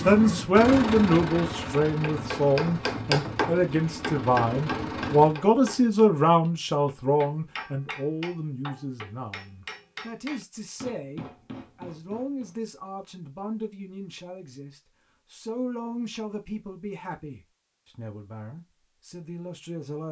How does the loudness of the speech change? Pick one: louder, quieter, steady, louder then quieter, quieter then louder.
quieter.